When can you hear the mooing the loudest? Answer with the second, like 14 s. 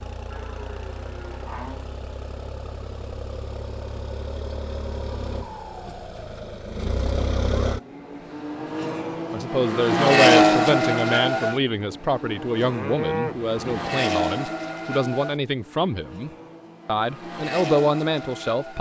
13 s.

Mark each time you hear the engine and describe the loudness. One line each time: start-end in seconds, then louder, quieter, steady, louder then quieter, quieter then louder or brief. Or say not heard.
0.0-18.7 louder then quieter.